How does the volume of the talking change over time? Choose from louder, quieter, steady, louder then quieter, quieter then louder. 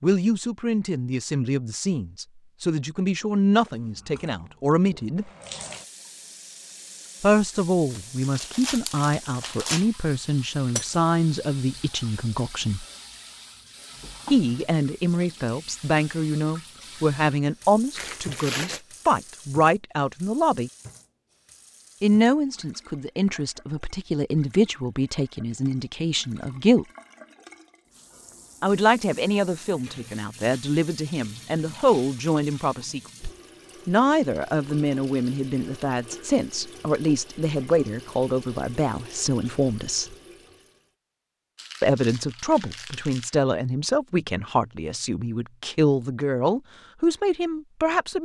steady.